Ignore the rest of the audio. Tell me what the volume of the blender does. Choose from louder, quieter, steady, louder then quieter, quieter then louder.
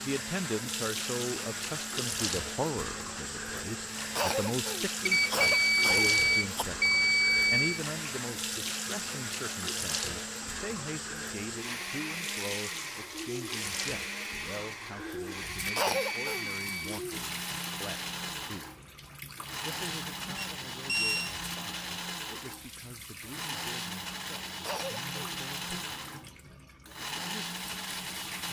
steady.